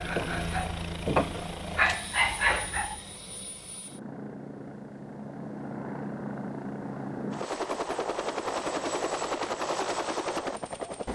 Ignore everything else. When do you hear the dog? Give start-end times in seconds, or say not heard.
0.0-3.0.